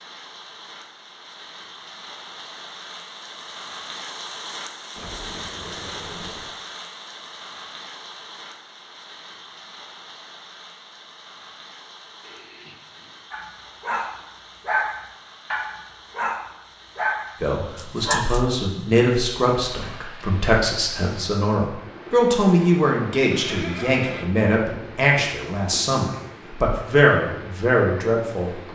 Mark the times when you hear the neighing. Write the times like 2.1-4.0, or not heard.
5.0-6.5, 12.2-13.2, 23.3-24.3.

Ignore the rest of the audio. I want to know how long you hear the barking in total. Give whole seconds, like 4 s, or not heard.
5 s.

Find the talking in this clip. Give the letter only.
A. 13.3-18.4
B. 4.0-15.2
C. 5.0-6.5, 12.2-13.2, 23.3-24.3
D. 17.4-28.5
D.